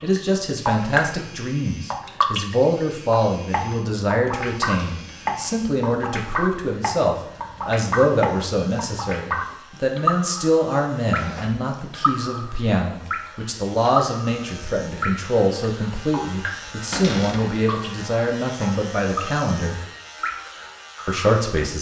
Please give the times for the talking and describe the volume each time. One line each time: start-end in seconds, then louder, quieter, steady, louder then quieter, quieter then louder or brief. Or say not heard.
0.0-19.8 steady
21.1-21.7 brief.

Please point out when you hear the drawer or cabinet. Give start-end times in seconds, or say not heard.
4.7-5.2, 11.2-11.7, 16.9-17.5.